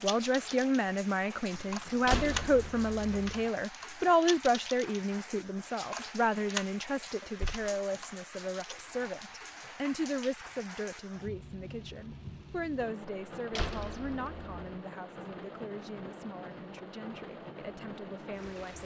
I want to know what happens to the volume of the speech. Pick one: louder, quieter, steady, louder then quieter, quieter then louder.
quieter.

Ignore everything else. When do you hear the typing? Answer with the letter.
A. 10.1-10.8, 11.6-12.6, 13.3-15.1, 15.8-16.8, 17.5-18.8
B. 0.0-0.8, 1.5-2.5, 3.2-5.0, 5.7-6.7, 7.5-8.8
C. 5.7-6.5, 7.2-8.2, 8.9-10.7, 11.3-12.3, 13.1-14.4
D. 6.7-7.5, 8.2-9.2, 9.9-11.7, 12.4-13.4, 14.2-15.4
B.